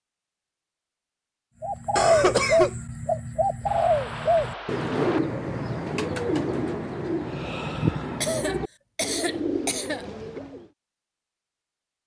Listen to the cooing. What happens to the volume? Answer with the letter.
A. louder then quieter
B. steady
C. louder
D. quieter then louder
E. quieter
E.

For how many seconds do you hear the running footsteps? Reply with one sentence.
The running footsteps can't be heard in this clip.